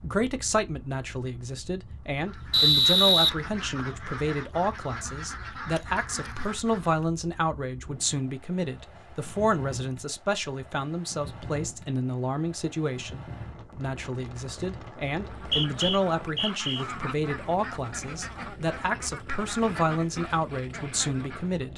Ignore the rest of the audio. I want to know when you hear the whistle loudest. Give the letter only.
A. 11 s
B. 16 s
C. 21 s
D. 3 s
D.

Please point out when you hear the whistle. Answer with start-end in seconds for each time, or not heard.
2.5-3.3, 15.3-16.9.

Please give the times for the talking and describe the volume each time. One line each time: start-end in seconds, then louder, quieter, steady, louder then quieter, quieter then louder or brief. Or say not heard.
0.0-21.7 steady.